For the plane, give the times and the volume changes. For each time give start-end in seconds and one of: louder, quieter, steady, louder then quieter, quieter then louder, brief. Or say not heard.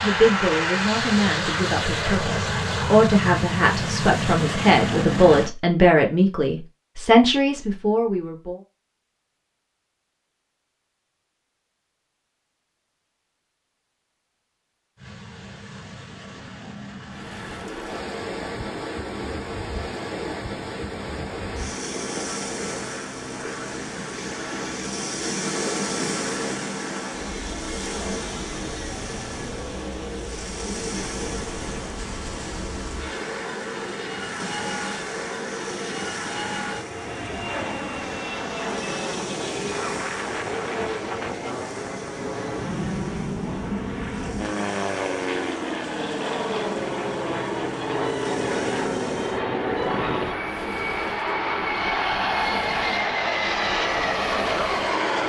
0.0-5.5 steady
14.9-55.2 louder.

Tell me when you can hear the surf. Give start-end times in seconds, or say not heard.
17.1-55.2.